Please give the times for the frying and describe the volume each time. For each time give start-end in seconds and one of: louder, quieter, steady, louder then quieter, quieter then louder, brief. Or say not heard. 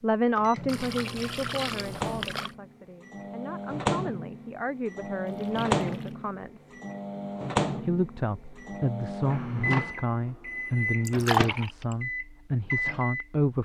not heard.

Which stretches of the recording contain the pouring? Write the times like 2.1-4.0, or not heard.
0.7-2.5, 5.2-6.2, 11.1-11.9.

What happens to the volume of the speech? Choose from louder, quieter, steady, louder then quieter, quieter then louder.
quieter then louder.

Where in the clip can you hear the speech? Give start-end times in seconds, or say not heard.
0.0-6.7, 7.8-13.6.